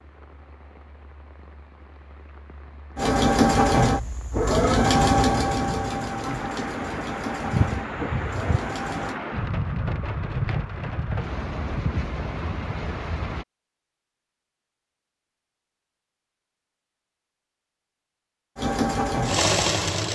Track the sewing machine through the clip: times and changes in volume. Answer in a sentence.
The sewing machine can be heard from 3.0 to 9.2 s, getting quieter; and briefly from 18.6 to 20.0 s.